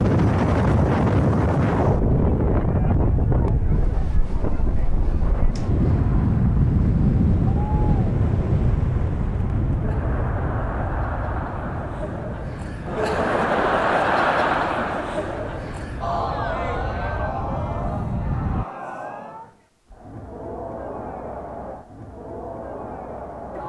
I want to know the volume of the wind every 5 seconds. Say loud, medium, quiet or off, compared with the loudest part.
loud, loud, medium, medium, off.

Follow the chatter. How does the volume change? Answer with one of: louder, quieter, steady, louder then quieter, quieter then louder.
louder then quieter.